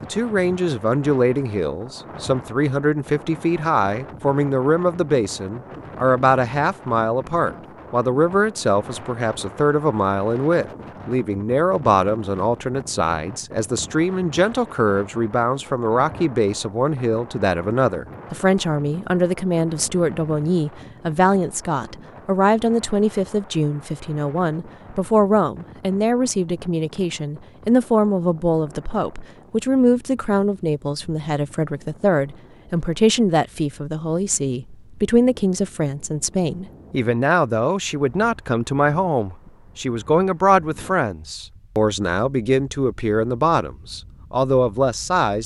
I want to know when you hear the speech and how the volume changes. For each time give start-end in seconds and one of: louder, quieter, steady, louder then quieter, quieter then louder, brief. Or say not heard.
0.0-45.4 steady.